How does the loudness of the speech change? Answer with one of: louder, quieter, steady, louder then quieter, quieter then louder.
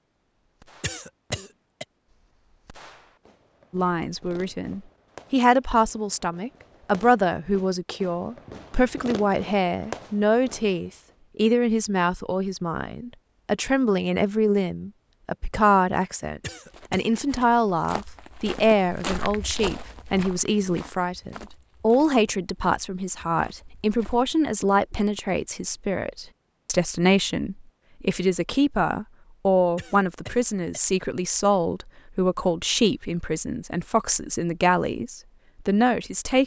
steady.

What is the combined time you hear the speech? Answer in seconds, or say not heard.
33 s.